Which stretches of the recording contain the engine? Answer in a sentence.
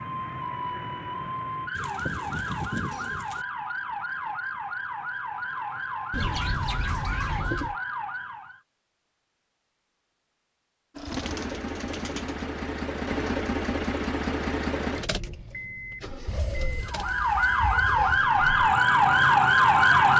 You can hear the engine from 10.9 to 20.1 s.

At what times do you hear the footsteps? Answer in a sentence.
The footsteps can't be heard in this clip.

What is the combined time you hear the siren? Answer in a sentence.
You can hear the siren for 12 seconds altogether.